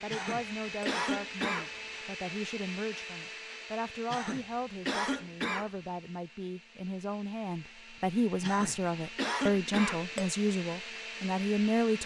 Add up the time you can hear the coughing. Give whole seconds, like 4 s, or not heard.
5 s.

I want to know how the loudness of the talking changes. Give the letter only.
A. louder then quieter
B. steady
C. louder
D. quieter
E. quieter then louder
C.